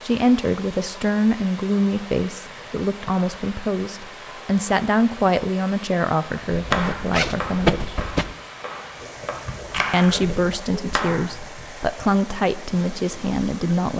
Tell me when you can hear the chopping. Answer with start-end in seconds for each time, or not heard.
6.5-11.4.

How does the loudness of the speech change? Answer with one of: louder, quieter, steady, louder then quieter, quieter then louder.
steady.